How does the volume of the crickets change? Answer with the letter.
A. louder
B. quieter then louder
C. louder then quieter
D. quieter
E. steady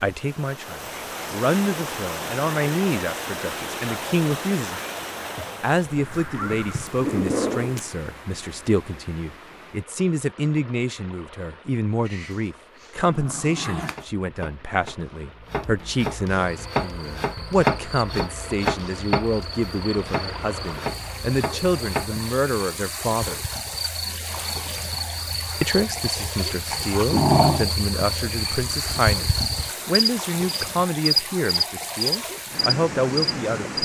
A.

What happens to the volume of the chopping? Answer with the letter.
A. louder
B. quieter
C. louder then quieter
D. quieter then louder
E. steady
C.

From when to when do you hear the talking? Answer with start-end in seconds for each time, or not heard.
0.0-4.8, 5.6-23.4, 25.6-33.8.